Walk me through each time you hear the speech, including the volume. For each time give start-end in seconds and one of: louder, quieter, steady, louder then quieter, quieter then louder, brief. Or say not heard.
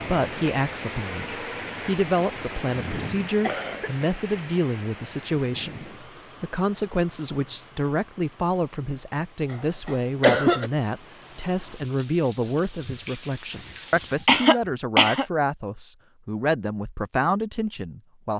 0.0-18.3 steady.